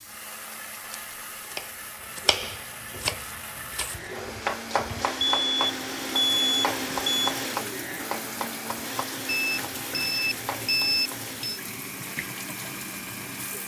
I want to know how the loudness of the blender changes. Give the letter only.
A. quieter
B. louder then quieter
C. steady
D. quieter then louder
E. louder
B.